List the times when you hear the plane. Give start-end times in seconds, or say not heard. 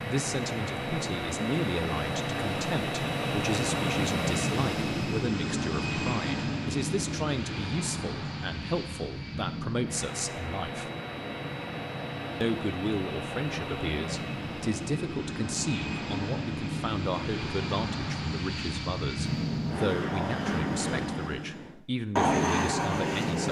0.0-23.4.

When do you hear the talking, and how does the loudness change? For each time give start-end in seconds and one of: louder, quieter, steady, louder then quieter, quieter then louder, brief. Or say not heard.
0.0-10.9 steady
12.4-23.4 steady.